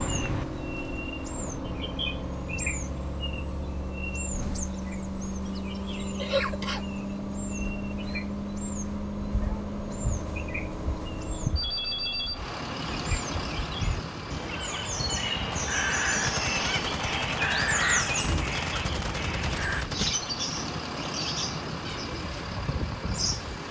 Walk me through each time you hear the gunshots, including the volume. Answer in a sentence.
The gunshots can be heard from 15.4 to 20.2 s, at a steady volume.